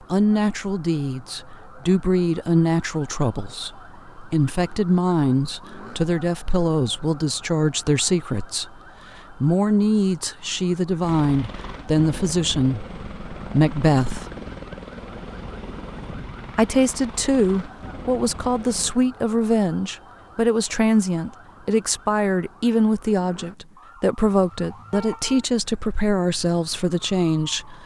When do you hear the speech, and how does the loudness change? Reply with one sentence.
You can hear the speech from 0.1 to 14.2 s, at a steady volume; and from 16.6 to 27.8 s, at a steady volume.